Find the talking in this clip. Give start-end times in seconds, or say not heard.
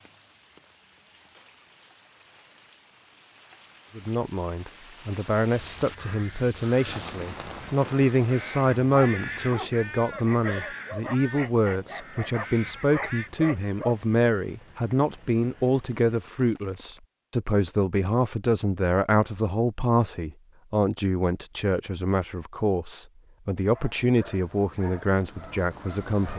4.0-26.3.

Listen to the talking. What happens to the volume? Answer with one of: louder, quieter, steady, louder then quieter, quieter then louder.
steady.